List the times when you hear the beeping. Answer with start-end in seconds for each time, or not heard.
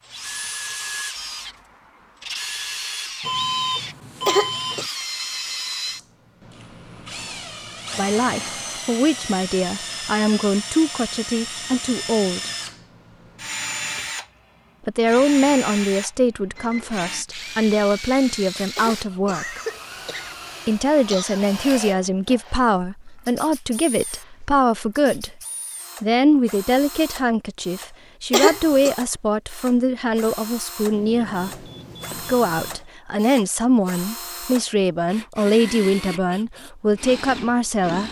3.2-4.9, 16.6-17.2, 30.9-32.9.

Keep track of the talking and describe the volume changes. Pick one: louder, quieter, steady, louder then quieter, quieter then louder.
steady.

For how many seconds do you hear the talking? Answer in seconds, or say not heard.
26 s.